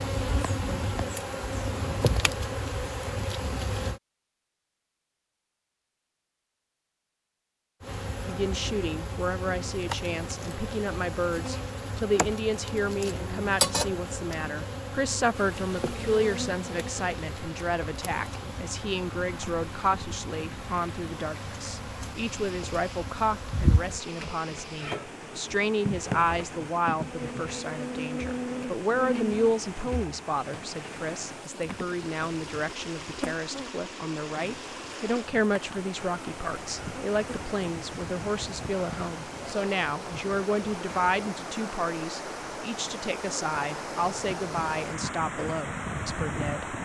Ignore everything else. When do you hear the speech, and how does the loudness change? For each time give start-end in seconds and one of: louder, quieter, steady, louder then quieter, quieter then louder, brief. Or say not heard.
8.2-46.8 steady.